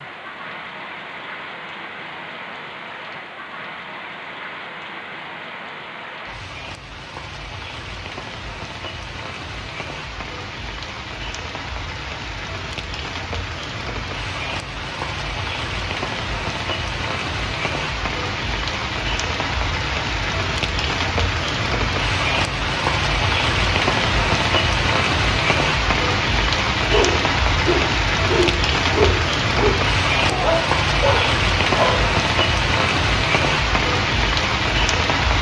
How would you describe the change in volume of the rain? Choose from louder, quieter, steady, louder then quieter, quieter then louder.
louder.